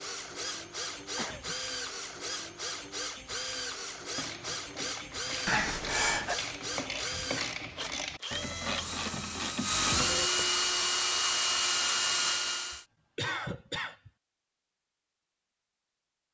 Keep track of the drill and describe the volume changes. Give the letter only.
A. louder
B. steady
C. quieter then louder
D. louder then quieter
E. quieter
A.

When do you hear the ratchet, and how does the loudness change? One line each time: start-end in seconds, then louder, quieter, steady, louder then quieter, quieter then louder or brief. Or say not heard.
4.2-10.9 louder.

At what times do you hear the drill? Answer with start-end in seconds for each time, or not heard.
0.0-12.8.